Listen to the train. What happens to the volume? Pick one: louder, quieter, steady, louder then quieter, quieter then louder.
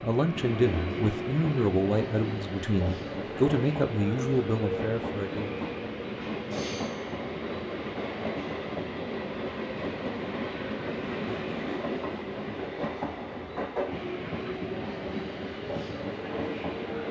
steady.